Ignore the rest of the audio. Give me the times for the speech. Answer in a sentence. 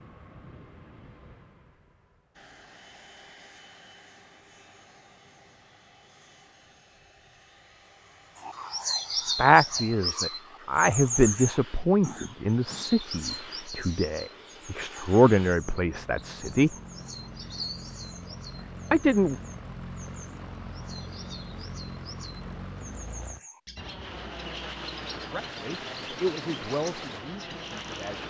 You can hear the speech from 9.3 to 16.7 s, from 18.9 to 19.4 s and from 25.1 to 28.2 s.